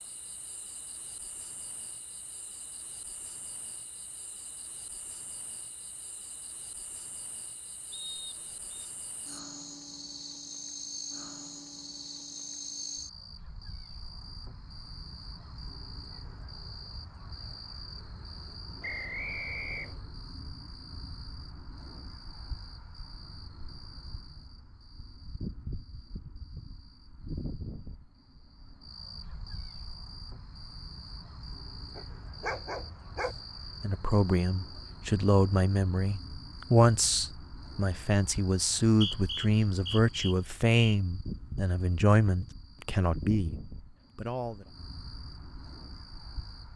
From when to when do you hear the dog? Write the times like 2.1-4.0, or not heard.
31.9-33.4.